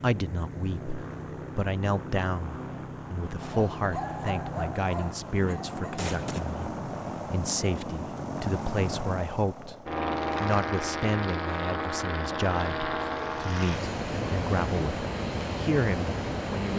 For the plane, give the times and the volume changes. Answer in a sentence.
The plane can be heard from 0.0 to 16.7 s, getting louder.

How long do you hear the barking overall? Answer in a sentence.
You can hear the barking for 3 seconds altogether.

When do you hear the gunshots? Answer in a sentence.
The gunshots can be heard from 6.0 to 6.6 s.